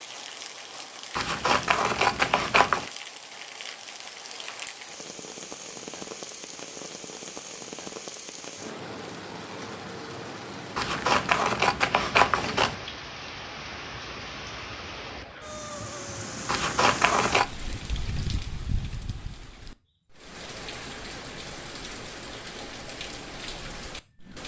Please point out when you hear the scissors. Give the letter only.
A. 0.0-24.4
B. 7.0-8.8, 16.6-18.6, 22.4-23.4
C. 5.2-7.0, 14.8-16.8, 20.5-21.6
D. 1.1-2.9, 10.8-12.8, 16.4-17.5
D.